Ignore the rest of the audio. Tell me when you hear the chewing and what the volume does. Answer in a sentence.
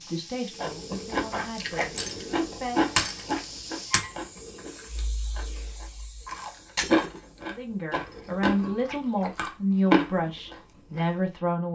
The chewing can be heard from 0.5 to 11.2 s, getting quieter then louder.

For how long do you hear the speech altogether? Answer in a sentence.
You can hear the speech for 7 seconds altogether.